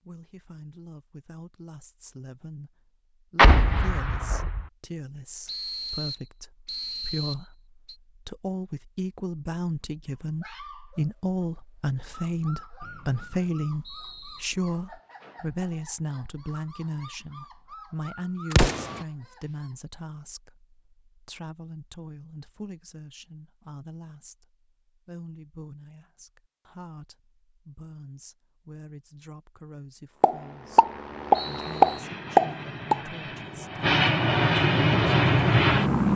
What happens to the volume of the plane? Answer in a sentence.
The volume of the plane goes up.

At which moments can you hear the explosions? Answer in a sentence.
The explosions can be heard from 3.4 to 4.7 s, from 18.5 to 19.0 s and from 30.2 to 33.0 s.